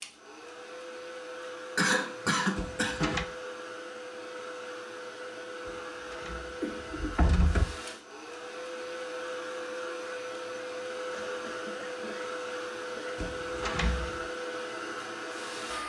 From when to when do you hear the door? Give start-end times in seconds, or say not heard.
2.5-3.2, 5.7-7.7, 13.2-14.2.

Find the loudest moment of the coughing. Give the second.
2 s.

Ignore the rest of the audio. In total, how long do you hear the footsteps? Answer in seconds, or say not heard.
not heard.